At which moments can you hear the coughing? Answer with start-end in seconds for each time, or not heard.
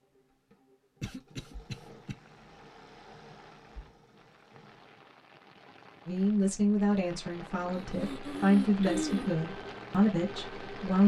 1.0-2.1, 7.7-9.3.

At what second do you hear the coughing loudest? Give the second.
9 s.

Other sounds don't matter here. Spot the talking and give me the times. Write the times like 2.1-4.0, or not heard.
6.0-11.0.